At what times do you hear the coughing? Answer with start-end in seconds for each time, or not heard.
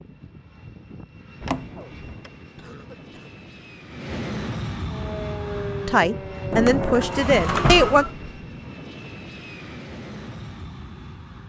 2.5-3.3.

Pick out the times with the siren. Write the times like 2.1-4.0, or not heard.
4.8-8.1.